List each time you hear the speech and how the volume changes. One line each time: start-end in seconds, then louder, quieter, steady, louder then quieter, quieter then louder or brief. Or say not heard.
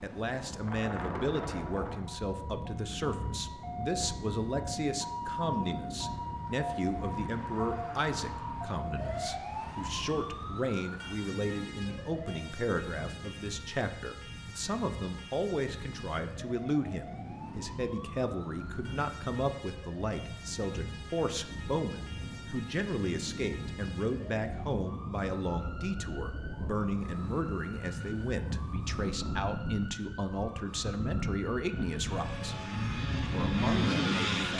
0.0-32.6 steady
33.3-34.5 brief.